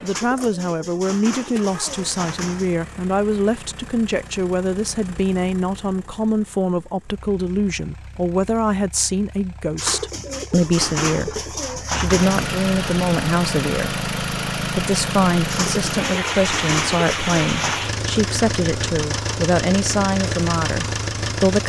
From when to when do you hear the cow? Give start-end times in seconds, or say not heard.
not heard.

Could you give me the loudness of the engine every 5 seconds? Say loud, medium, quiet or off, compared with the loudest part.
quiet, quiet, loud, loud, loud.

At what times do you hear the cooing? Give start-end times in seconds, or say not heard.
0.1-2.8, 9.8-12.5, 15.5-17.8.